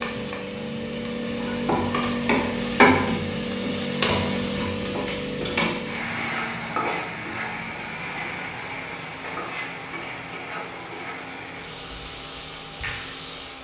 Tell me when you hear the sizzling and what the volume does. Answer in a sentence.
You can hear the sizzling from 0.0 to 13.5 s, getting quieter.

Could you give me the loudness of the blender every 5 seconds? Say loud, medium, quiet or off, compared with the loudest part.
loud, medium, medium.